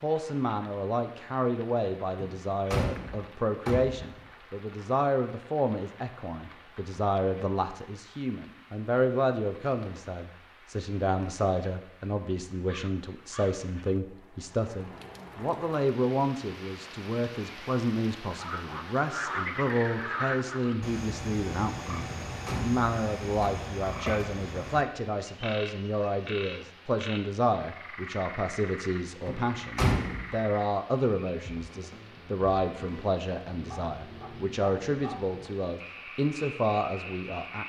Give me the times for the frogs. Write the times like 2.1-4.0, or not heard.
18.3-37.6.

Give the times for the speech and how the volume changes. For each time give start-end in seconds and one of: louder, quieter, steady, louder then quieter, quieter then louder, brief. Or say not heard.
0.0-37.6 steady.